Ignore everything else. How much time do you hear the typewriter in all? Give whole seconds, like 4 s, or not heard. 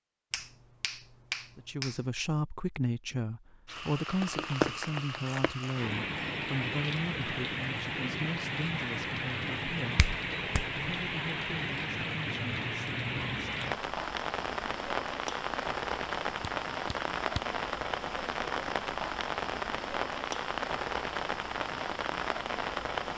not heard.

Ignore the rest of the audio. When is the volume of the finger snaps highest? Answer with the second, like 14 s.
1 s.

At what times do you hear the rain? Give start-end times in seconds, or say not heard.
3.6-23.1.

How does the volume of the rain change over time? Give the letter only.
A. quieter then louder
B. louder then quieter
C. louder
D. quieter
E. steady
E.